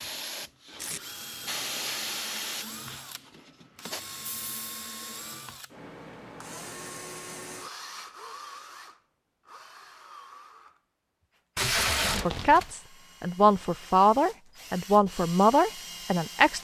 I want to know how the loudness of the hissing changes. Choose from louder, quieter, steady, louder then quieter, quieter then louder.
louder then quieter.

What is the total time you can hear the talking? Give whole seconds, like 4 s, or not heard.
4 s.